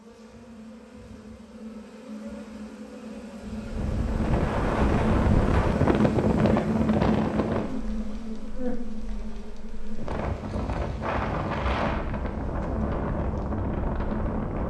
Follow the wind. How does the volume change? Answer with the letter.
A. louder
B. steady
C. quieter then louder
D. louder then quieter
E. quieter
C.